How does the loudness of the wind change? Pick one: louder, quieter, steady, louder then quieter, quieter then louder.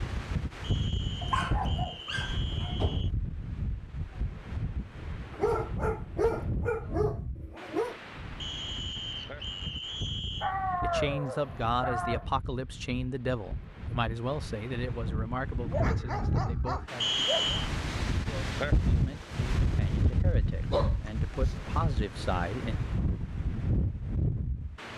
quieter then louder.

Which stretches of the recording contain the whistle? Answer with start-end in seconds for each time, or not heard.
0.6-3.1, 8.4-10.6, 17.0-17.7.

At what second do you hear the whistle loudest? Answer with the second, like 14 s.
17 s.